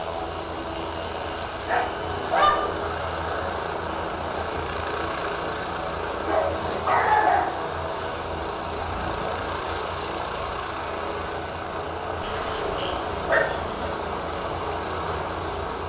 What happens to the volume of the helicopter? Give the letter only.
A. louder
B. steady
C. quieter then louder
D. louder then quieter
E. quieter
B.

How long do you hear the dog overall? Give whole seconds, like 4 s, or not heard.
4 s.